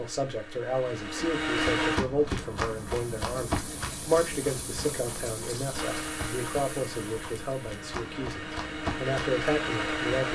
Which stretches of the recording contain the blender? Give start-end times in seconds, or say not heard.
0.0-2.0, 5.8-10.3.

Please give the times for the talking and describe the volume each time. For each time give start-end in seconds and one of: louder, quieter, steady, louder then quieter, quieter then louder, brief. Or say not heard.
0.0-10.3 steady.